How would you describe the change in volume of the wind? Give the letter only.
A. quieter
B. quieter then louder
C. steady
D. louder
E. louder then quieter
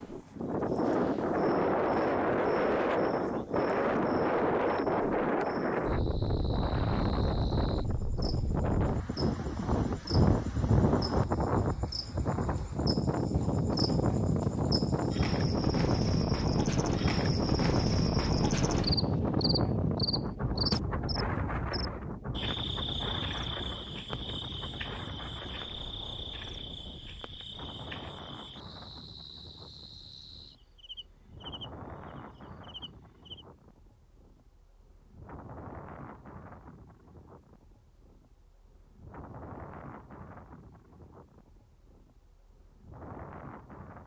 A.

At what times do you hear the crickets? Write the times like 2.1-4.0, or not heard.
0.0-33.5.